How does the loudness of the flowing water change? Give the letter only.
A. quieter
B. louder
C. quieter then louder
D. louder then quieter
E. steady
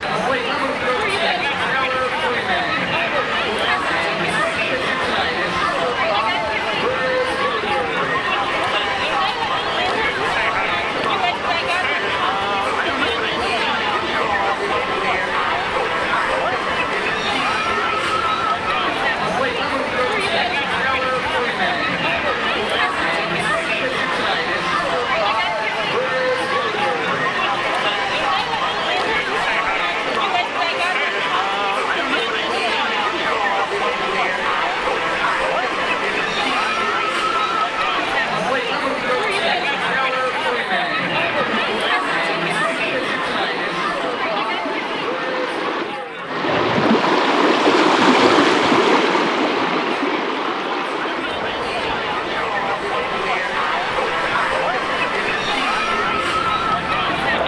B.